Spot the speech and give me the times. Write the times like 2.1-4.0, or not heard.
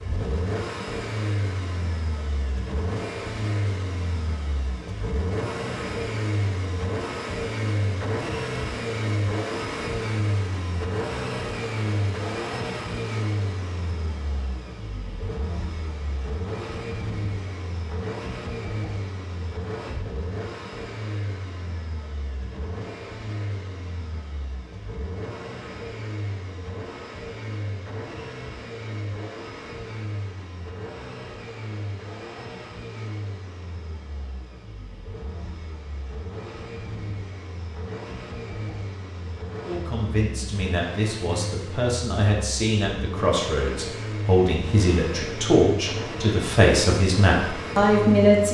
39.6-48.4.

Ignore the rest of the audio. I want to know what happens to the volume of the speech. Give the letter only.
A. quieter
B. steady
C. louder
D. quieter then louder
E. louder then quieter
C.